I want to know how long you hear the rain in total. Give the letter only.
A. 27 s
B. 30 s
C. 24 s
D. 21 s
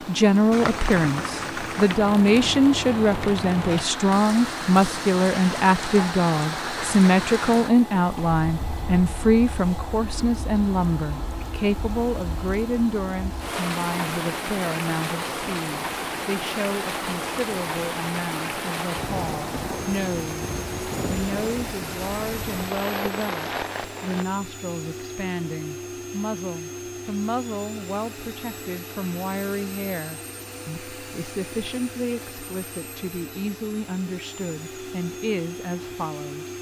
C.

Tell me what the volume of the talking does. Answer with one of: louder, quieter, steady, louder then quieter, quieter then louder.
quieter.